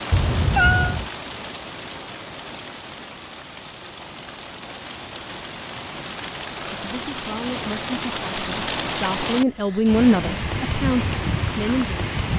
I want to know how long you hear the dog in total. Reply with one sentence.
The dog can't be heard in this clip.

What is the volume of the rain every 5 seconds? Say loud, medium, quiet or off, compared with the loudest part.
medium, loud, loud.